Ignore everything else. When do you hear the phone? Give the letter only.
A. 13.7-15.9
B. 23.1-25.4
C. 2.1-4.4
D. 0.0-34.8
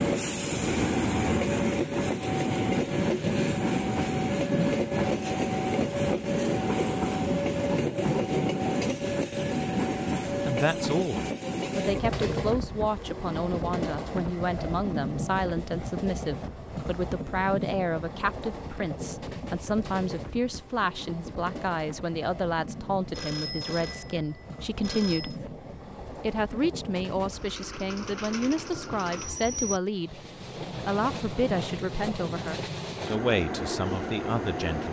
B.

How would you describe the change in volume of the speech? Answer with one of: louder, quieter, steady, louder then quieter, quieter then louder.
steady.